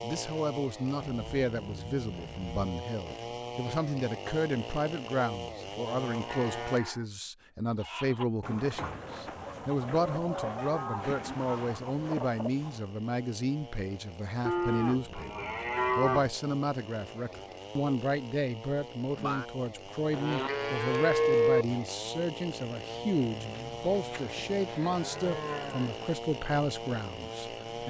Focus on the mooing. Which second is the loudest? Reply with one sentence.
The volume of the mooing peaks at 21 seconds.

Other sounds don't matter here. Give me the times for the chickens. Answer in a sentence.
The chickens can be heard from 7.7 to 12.8 s.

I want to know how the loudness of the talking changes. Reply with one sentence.
The loudness of the talking stays about the same.